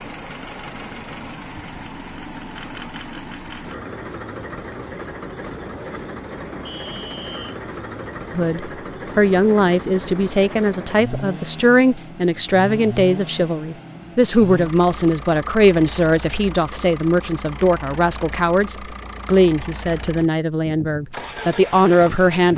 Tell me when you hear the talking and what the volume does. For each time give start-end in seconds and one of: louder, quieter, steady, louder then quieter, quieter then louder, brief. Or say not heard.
8.3-22.5 steady.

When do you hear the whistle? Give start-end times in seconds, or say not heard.
6.7-7.6.